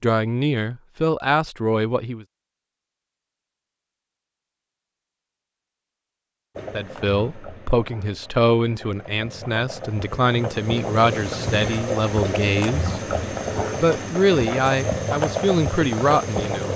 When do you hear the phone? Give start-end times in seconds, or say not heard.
not heard.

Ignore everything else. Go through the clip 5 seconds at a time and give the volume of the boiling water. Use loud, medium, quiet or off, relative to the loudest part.
off, quiet, loud, loud.